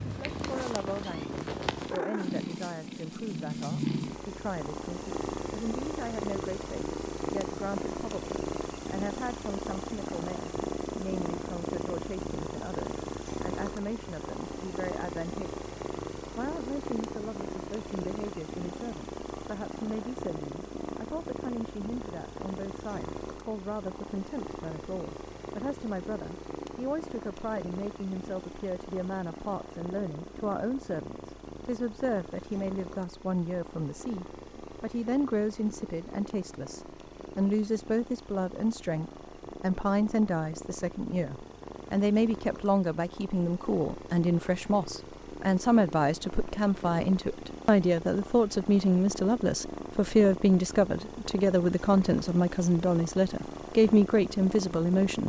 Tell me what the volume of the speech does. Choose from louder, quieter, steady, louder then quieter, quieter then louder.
louder.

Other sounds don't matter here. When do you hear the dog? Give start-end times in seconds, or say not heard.
not heard.